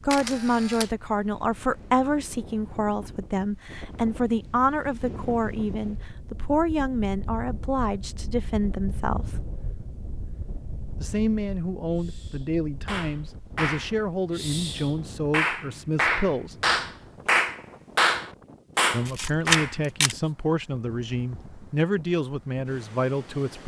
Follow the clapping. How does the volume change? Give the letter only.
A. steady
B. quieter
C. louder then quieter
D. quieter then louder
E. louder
D.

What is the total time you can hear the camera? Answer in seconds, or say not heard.
2 s.